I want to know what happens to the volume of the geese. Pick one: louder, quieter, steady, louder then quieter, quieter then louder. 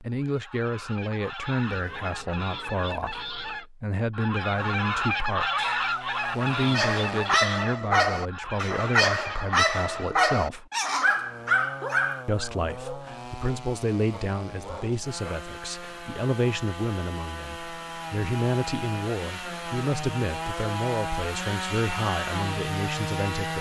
louder then quieter.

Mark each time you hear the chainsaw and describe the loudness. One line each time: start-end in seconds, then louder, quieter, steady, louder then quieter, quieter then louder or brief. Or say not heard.
4.5-7.5 brief
11.2-23.5 louder.